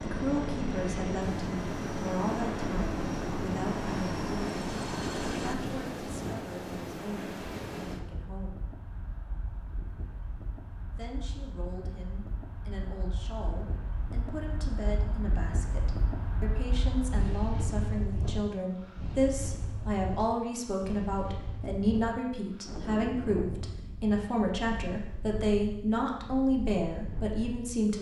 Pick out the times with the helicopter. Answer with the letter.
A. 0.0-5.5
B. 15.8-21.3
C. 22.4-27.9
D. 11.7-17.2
A.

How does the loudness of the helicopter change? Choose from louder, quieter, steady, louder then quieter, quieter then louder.
steady.